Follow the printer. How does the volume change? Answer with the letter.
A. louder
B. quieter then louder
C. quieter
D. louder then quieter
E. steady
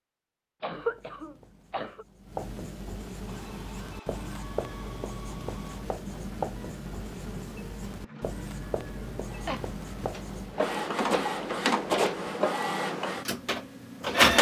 A.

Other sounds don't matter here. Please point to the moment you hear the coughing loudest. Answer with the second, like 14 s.
1 s.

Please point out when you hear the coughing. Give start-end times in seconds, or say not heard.
0.6-2.0, 9.4-10.1.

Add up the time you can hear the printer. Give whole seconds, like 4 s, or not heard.
11 s.